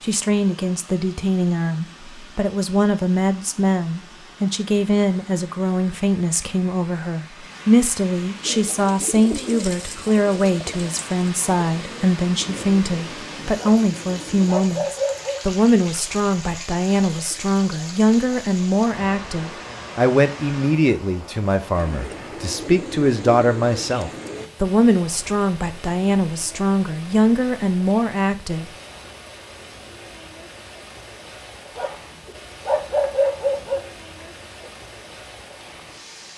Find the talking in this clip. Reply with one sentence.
The talking can be heard from 0.0 to 28.6 s.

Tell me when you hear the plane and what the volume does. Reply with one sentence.
The plane can't be heard in this clip.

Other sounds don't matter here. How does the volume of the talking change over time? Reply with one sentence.
The volume of the talking stays about the same.